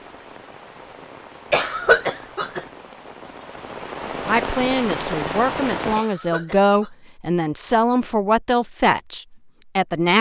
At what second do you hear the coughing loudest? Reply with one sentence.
The volume of the coughing peaks at 2 seconds.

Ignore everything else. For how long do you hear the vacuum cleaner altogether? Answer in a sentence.
The vacuum cleaner can't be heard in this clip.